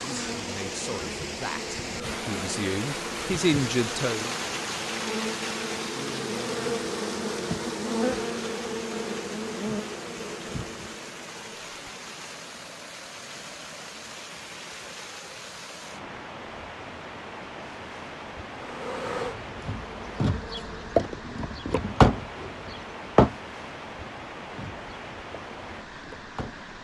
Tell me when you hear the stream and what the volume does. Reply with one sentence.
The stream can be heard from 0.0 to 26.7 s, getting quieter.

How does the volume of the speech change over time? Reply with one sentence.
The loudness of the speech goes up.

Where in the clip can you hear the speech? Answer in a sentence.
The speech can be heard from 0.2 to 4.3 s.